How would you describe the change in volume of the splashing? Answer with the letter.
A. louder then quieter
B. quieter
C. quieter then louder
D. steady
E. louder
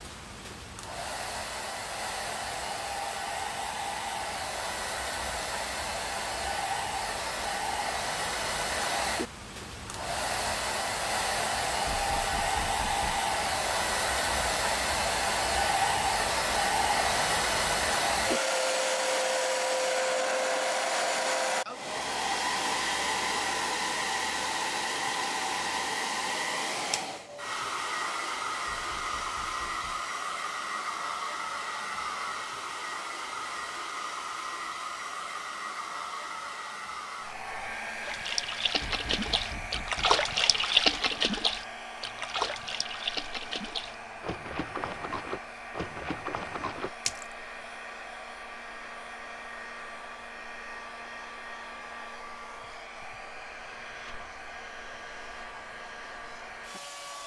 A.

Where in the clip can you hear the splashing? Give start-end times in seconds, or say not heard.
38.0-47.2.